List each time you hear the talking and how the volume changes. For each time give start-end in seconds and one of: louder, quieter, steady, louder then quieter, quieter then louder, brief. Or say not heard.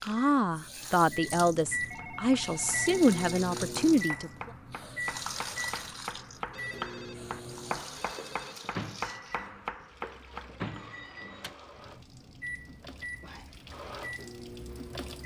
0.0-4.5 steady.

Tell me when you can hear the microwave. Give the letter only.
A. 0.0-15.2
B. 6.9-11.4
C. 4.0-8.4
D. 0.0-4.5
A.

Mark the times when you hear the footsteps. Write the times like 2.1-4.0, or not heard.
not heard.